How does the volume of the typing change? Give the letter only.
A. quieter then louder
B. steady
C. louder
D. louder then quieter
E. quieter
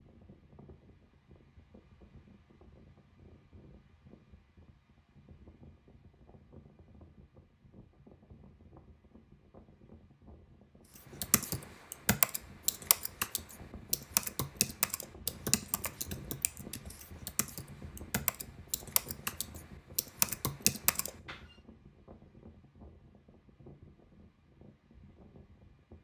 A.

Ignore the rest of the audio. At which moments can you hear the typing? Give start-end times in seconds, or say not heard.
11.2-21.4.